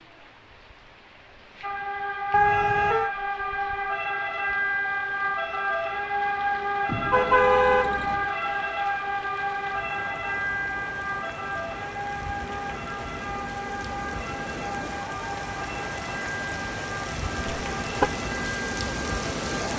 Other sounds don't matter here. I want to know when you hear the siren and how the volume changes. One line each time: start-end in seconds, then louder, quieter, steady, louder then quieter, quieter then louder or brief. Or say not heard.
1.6-19.7 quieter.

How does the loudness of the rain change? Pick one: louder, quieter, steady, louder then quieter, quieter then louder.
louder.